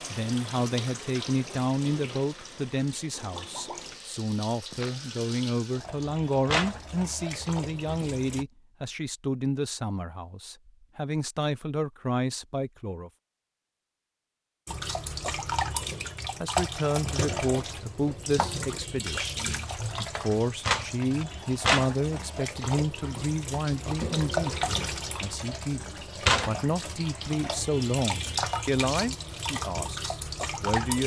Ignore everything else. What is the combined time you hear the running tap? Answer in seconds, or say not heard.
25 s.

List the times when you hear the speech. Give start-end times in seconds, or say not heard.
0.1-13.1, 16.4-31.0.